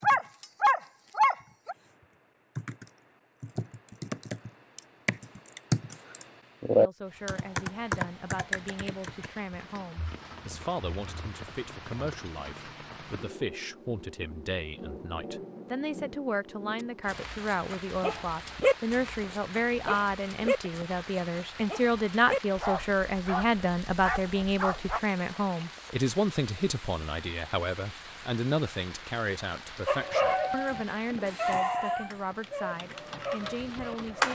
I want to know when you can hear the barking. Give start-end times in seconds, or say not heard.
0.0-1.8, 16.8-25.0, 29.9-34.2.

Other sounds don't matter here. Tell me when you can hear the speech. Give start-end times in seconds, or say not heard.
6.8-34.2.